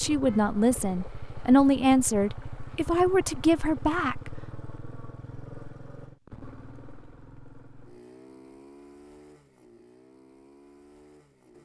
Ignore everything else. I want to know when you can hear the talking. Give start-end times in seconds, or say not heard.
0.0-4.3.